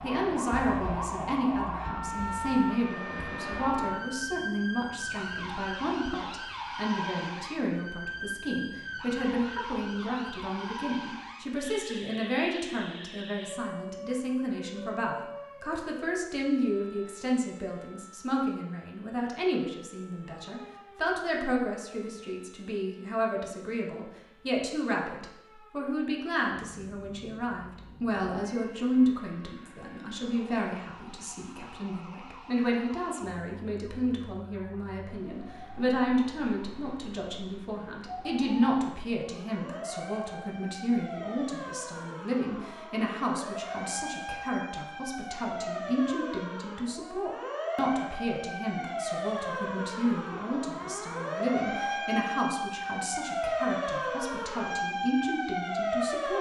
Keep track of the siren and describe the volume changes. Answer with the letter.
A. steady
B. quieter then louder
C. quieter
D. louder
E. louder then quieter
B.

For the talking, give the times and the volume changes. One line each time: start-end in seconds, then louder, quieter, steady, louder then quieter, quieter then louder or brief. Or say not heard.
0.0-56.3 steady.